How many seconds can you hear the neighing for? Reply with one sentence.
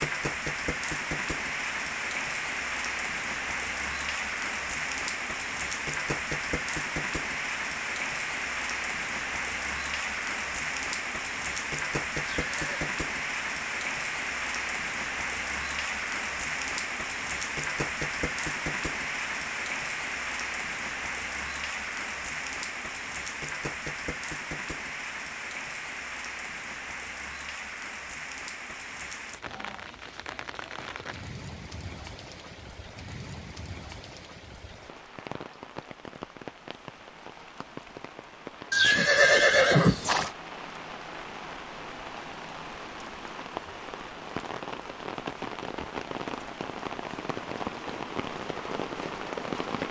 The neighing can be heard for 2 seconds in total.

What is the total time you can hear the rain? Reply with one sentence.
The rain can be heard for 50 seconds in total.